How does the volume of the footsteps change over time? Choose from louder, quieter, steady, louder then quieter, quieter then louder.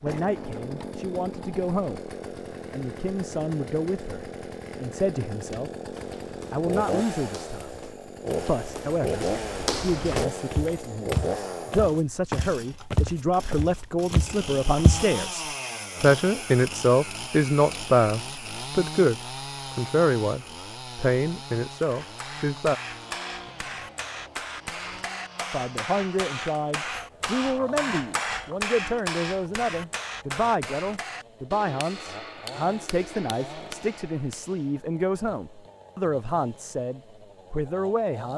louder.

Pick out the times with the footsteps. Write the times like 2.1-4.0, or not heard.
5.5-15.1.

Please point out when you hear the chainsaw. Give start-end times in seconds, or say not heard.
0.0-38.3.